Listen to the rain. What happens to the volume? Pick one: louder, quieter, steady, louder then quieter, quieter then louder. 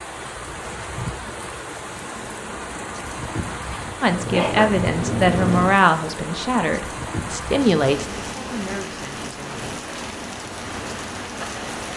steady.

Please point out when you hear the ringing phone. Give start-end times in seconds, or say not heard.
not heard.